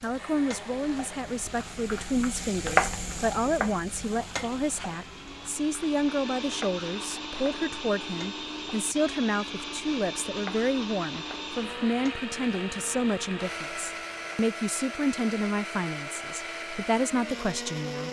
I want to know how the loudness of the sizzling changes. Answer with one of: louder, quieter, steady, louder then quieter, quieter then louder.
quieter.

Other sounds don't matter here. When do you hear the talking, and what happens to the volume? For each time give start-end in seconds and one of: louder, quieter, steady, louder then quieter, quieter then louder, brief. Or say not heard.
0.0-18.0 steady.